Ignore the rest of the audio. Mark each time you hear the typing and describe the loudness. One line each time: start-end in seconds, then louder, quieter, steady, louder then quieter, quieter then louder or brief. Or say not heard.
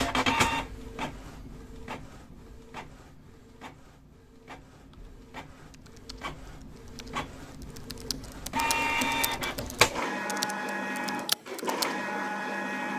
4.7-11.9 louder.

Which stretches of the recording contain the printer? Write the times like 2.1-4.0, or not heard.
0.0-12.9.